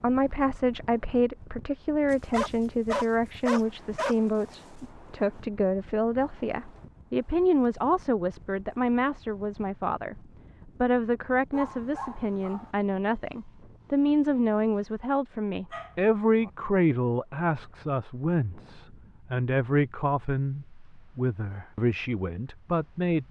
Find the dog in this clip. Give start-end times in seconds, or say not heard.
2.1-4.2, 11.5-12.7, 15.7-16.5.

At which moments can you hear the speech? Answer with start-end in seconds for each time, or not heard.
0.0-23.2.